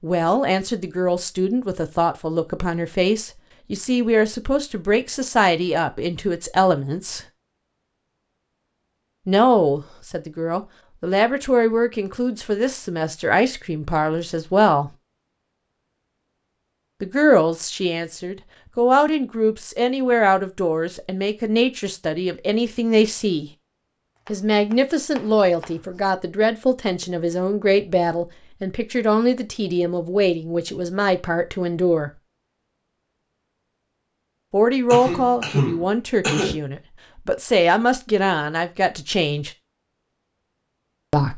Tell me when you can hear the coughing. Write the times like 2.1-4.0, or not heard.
34.9-36.5.